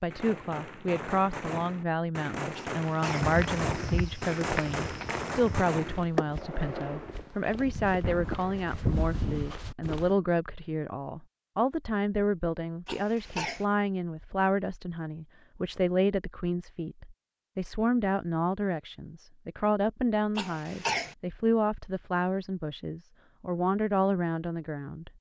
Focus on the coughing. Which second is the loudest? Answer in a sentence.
The loudest moment of the coughing is at 21 seconds.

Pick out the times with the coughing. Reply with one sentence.
The coughing can be heard from 2.5 to 3.3 s, from 12.8 to 13.7 s and from 20.4 to 21.1 s.